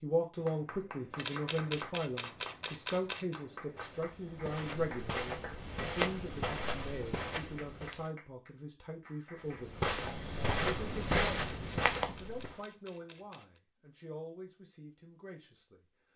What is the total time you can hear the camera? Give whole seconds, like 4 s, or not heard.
5 s.